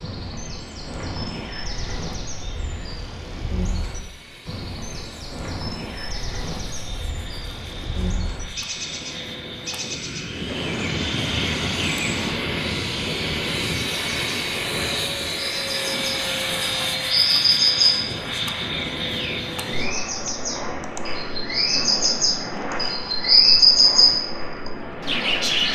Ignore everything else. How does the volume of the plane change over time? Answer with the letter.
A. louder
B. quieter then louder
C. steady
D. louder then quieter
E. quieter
D.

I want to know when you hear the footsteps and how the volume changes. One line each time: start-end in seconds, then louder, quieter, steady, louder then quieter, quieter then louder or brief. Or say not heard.
not heard.